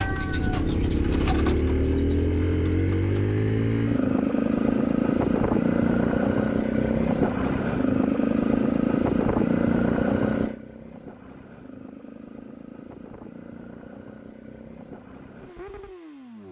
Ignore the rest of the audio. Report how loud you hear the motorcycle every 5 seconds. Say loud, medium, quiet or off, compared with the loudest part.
loud, loud, medium, quiet.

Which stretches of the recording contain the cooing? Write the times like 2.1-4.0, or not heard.
0.0-3.2.